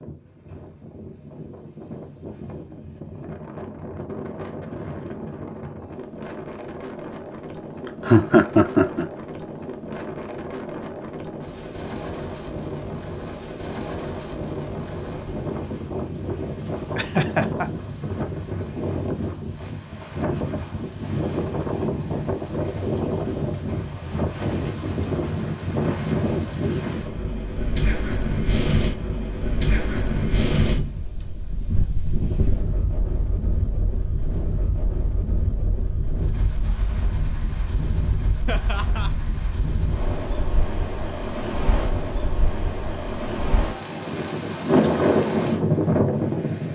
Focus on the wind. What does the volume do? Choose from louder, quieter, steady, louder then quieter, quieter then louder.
louder.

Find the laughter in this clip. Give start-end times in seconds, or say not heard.
7.8-9.1, 16.9-17.7, 38.5-39.1.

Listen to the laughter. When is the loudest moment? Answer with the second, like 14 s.
8 s.